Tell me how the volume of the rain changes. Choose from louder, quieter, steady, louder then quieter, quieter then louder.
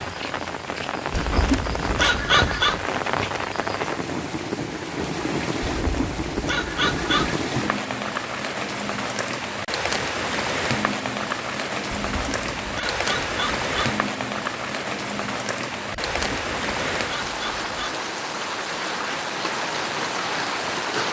steady.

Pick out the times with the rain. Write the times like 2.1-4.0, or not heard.
0.0-21.0.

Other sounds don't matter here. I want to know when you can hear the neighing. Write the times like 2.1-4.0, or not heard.
not heard.